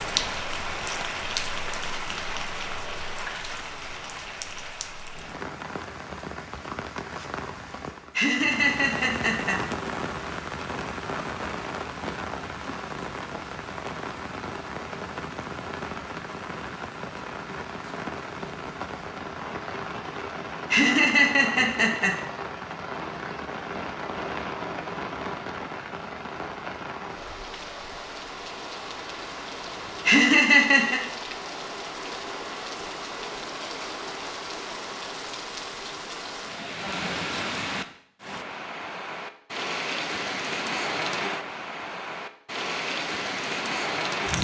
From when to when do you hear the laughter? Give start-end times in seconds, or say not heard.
8.2-9.6, 20.7-22.1, 30.1-31.0.